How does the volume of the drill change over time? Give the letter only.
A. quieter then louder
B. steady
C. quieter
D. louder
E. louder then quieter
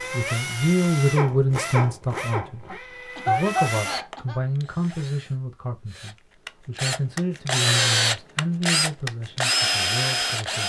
A.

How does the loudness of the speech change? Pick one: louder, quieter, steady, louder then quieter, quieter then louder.
quieter.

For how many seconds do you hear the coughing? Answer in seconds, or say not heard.
2 s.